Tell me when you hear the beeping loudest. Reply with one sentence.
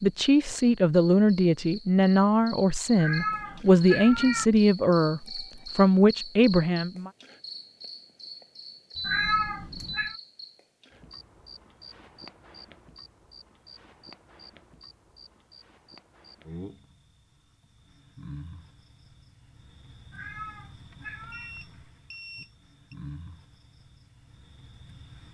The volume of the beeping peaks at 9 seconds.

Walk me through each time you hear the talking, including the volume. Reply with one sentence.
You can hear the talking from 0.0 to 7.1 s, at a steady volume.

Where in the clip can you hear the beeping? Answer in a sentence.
The beeping can be heard from 5.2 to 5.8 s, from 8.9 to 10.2 s and from 21.3 to 22.9 s.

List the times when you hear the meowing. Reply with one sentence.
The meowing can be heard from 3.0 to 4.5 s, from 9.1 to 10.2 s and from 20.1 to 21.6 s.